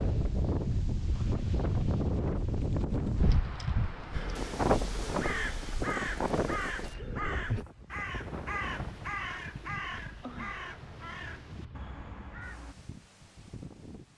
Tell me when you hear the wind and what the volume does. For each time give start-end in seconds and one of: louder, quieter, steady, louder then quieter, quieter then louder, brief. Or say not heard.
0.0-14.1 quieter.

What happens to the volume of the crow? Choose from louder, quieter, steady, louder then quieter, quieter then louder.
quieter.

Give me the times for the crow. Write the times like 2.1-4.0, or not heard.
4.1-12.8.